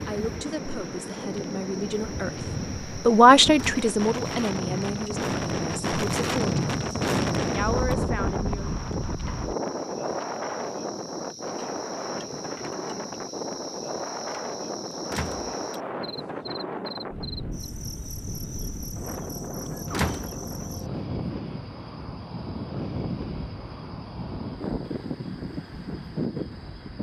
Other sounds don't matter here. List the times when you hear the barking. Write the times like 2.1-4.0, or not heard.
not heard.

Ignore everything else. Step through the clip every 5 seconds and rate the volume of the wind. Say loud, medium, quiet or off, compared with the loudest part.
medium, loud, medium, medium, medium, medium.